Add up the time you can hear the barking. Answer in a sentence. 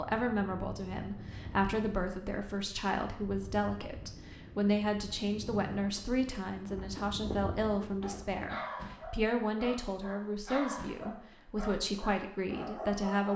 You can hear the barking for 5 seconds altogether.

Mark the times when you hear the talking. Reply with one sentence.
You can hear the talking from 0.0 to 13.3 s.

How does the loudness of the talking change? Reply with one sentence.
The volume of the talking stays about the same.